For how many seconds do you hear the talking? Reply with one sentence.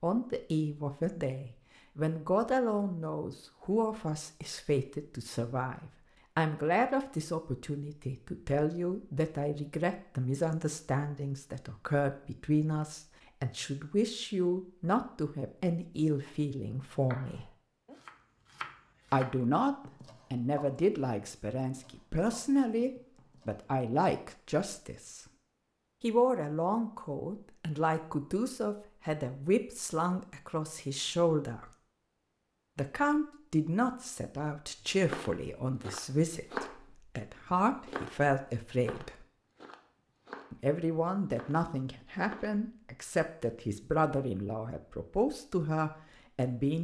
You can hear the talking for 42 seconds altogether.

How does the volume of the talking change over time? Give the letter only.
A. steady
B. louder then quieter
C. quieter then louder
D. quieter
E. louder
A.